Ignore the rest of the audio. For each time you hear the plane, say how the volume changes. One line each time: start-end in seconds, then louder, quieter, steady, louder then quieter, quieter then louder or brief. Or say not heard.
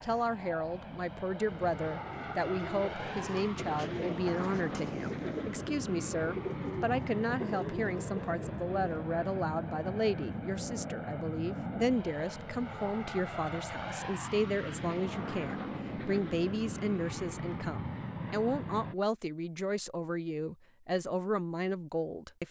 0.0-18.9 steady.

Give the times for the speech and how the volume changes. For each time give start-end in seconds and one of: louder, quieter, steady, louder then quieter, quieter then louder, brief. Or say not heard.
0.0-22.4 steady.